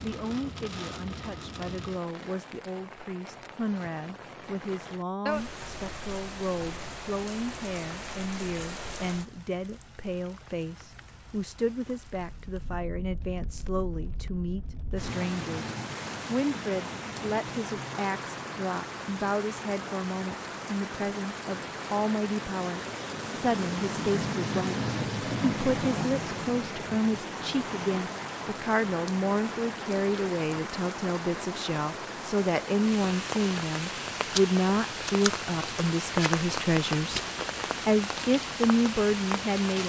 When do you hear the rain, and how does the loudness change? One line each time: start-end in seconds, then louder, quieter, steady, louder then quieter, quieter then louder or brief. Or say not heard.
0.0-39.8 louder.